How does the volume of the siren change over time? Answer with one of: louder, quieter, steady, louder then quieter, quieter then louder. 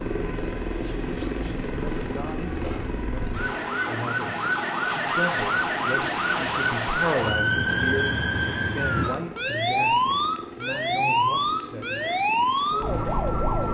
louder.